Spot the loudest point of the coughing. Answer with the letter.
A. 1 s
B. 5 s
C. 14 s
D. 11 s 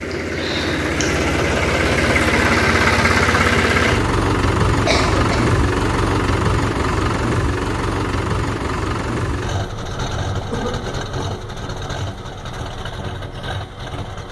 B.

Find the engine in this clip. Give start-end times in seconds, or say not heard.
0.0-14.2.